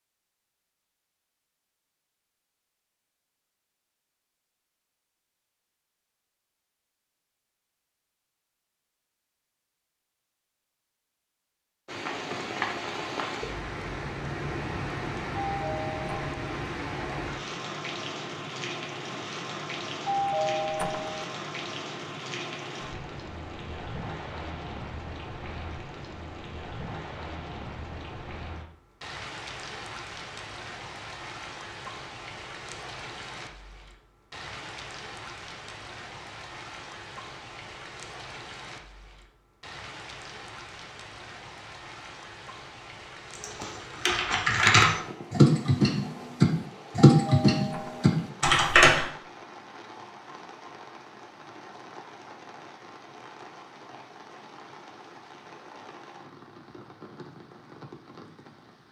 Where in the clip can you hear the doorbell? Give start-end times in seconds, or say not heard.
15.3-16.6, 20.1-21.2, 47.0-48.2.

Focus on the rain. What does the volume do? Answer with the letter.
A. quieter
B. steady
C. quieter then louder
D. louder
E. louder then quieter
A.